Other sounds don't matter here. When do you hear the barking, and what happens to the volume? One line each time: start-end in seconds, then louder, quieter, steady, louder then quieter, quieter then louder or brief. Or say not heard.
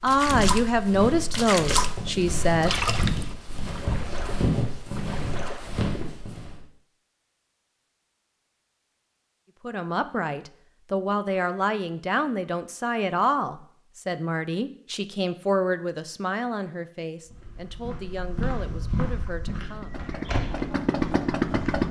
not heard.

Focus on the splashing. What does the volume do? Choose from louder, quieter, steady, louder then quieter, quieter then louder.
quieter.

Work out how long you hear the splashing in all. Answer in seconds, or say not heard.
6 s.